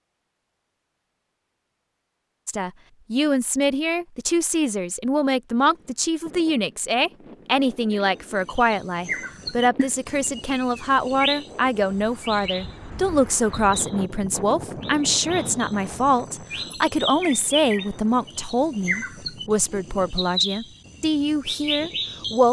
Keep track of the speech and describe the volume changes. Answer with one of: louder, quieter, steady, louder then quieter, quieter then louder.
steady.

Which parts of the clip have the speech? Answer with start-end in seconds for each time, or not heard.
2.5-22.4.